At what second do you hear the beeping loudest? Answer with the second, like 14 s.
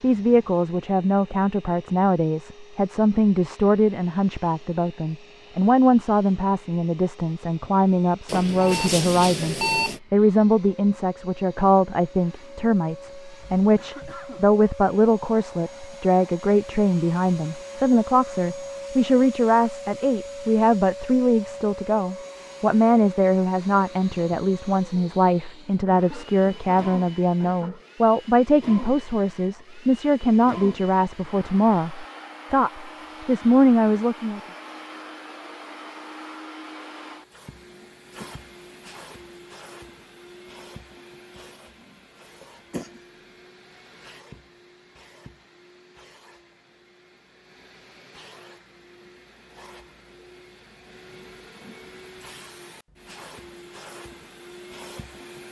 10 s.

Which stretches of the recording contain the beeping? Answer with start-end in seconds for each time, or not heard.
8.2-10.0.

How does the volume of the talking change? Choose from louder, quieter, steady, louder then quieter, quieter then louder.
steady.